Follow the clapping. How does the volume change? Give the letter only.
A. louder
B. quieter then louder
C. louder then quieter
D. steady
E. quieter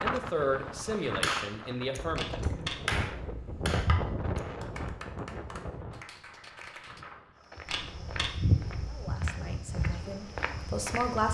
C.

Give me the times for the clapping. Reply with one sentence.
The clapping can be heard from 1.2 to 7.0 s.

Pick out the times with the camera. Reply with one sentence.
You can hear the camera from 2.1 to 4.2 s and from 7.7 to 9.1 s.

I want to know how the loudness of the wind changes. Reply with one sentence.
The volume of the wind goes down.